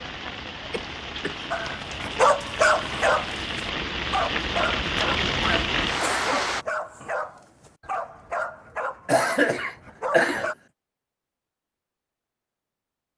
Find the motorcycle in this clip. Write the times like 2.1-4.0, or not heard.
not heard.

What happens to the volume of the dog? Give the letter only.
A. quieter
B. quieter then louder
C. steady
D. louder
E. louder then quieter
A.